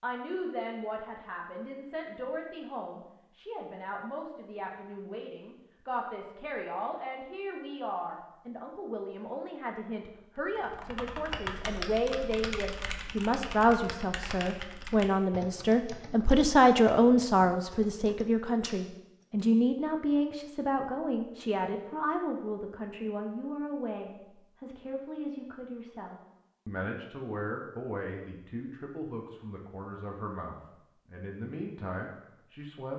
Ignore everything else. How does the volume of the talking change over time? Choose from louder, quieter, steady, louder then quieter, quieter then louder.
louder then quieter.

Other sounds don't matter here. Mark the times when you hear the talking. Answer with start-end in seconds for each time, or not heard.
0.0-32.9.